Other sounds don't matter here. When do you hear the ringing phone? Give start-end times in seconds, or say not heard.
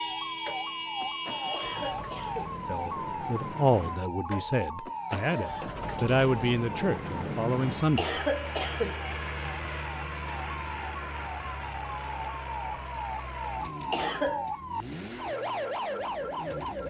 not heard.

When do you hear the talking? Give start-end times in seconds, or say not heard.
2.6-8.2.